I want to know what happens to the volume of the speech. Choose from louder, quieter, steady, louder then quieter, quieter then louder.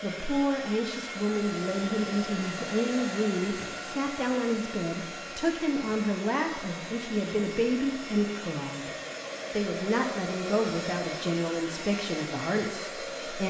steady.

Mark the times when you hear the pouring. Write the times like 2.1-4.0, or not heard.
not heard.